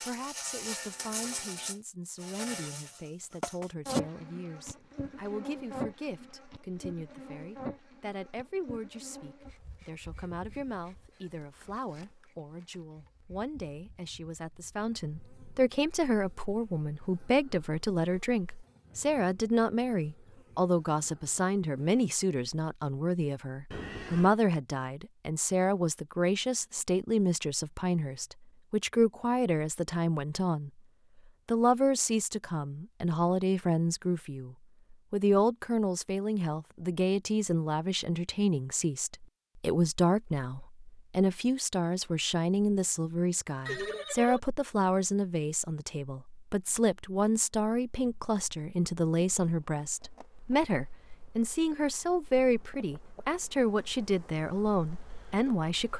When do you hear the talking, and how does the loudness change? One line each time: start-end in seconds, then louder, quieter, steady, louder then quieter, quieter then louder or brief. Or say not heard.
0.0-30.7 louder
31.4-55.9 steady.